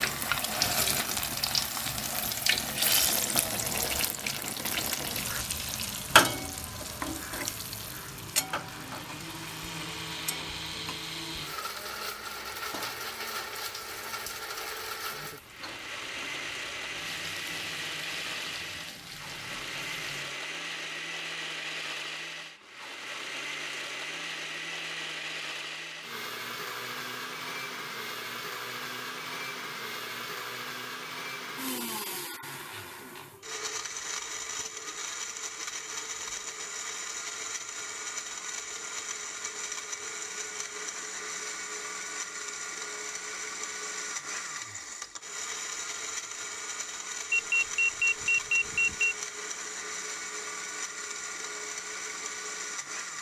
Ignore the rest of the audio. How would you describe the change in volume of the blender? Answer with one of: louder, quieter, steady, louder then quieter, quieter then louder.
steady.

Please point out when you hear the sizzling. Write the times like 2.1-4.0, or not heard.
0.0-20.4.